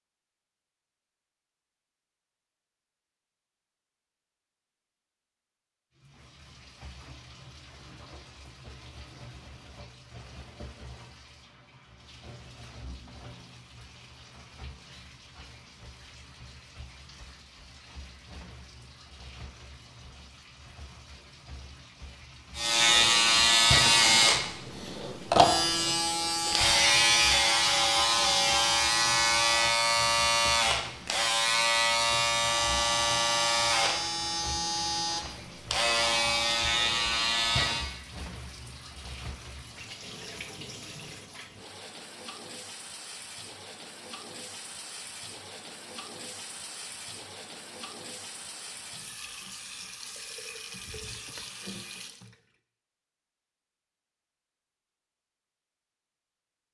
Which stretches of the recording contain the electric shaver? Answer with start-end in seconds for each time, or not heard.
22.6-37.9.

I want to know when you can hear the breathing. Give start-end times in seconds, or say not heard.
not heard.